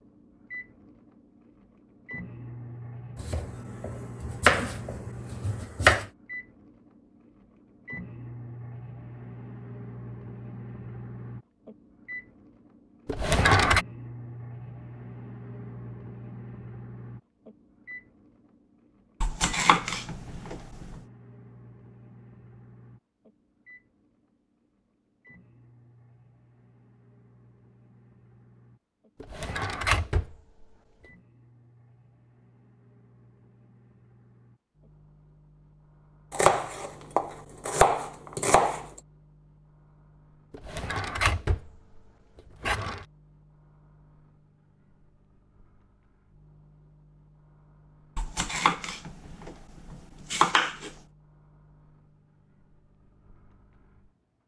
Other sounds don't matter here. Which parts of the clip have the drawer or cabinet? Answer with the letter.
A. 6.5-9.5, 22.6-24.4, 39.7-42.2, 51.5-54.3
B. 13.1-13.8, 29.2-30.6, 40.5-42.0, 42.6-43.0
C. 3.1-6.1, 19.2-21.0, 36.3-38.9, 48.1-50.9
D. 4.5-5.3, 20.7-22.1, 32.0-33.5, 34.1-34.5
B.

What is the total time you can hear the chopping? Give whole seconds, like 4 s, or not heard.
10 s.